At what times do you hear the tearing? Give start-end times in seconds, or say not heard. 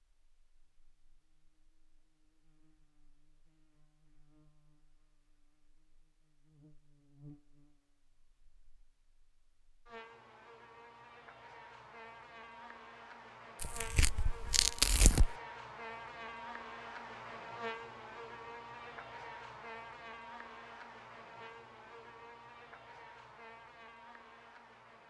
13.6-15.3.